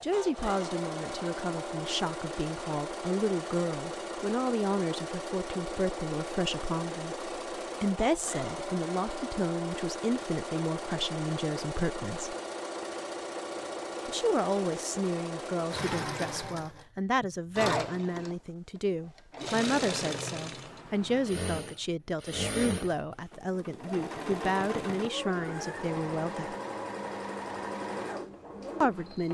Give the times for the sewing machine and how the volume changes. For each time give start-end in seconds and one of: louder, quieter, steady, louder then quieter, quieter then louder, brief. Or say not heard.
0.0-29.2 steady.